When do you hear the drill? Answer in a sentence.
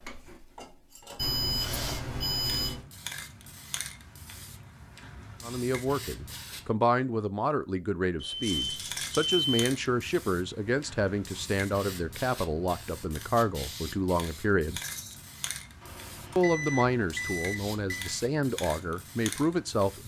The drill can be heard from 0.0 to 2.2 s.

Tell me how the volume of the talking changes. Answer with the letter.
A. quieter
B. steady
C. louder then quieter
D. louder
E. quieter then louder
B.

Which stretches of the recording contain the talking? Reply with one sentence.
The talking can be heard from 5.4 to 14.8 s and from 16.4 to 20.0 s.